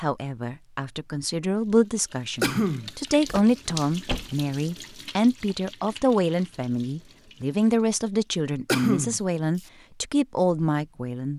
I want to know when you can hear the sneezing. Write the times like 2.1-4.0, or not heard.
2.4-3.4, 8.7-9.2.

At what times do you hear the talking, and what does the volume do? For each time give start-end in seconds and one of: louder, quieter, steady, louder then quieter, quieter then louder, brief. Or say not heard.
0.0-11.3 steady.